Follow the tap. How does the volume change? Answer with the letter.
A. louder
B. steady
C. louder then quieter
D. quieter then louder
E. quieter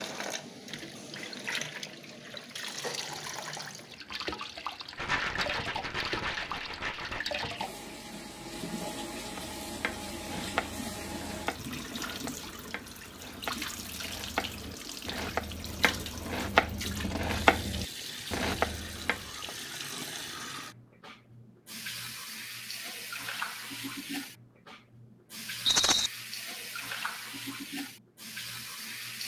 B.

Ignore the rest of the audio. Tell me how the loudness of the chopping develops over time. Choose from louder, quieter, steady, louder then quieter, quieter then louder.
quieter then louder.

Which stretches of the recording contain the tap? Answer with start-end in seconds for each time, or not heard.
0.0-29.2.